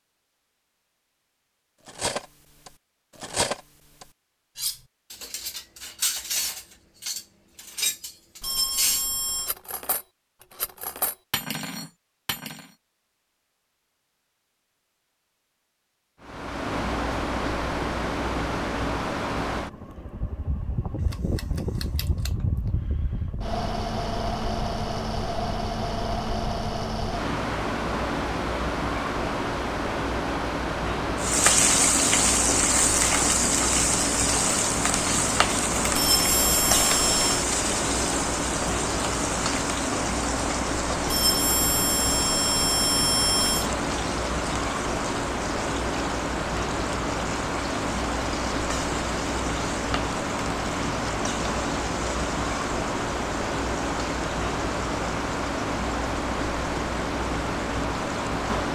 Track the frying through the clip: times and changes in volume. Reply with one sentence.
You can hear the frying from 31.1 to 58.7 s, getting quieter.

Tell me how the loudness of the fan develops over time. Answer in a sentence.
The volume of the fan stays about the same.